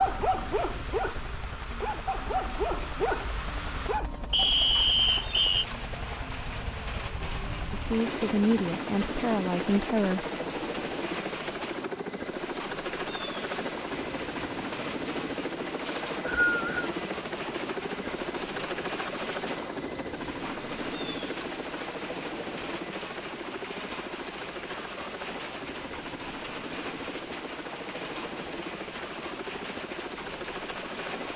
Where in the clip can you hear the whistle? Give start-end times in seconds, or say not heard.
4.3-5.7, 15.8-16.9.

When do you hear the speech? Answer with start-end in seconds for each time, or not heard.
7.7-10.2.